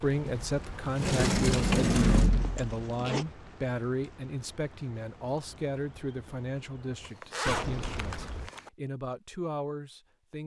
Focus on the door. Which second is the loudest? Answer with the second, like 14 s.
2 s.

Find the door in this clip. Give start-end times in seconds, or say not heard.
0.2-2.6, 7.5-8.5.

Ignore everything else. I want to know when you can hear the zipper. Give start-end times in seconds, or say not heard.
1.5-3.2, 7.0-8.7.